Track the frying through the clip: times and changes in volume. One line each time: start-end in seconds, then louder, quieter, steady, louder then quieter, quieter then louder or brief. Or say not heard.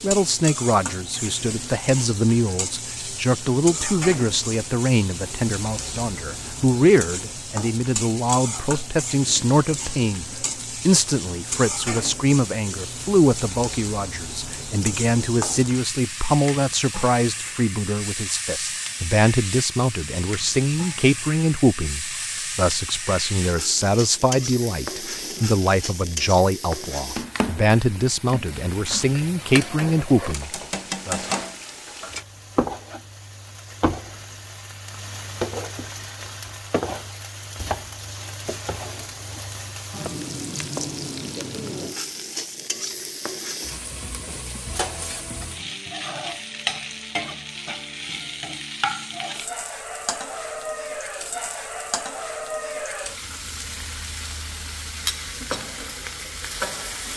0.0-57.1 steady.